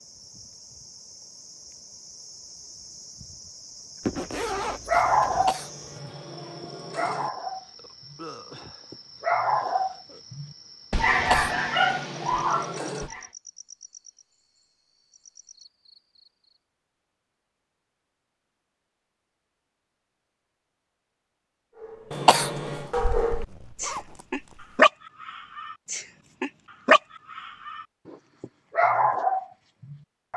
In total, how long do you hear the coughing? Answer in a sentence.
You can hear the coughing for 5 seconds altogether.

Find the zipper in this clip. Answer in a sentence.
You can hear the zipper from 4.0 to 5.5 s and from 22.7 to 24.8 s.